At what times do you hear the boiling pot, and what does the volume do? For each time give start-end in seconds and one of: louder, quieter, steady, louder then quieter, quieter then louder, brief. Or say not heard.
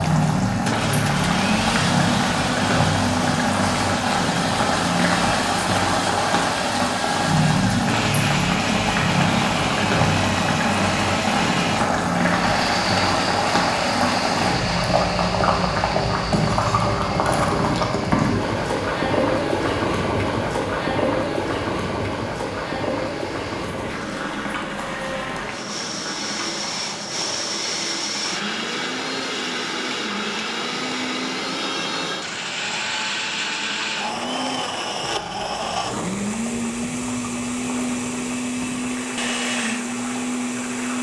0.0-40.9 quieter.